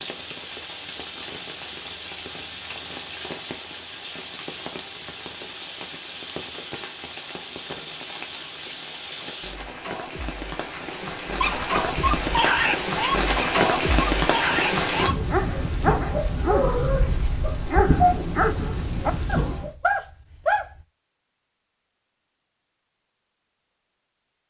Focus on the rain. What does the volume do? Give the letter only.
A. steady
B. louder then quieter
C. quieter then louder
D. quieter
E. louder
E.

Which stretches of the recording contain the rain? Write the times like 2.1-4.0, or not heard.
0.0-19.8.